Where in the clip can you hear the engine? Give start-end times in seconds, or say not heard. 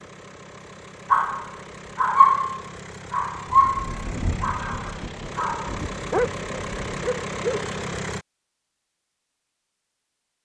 0.0-8.2.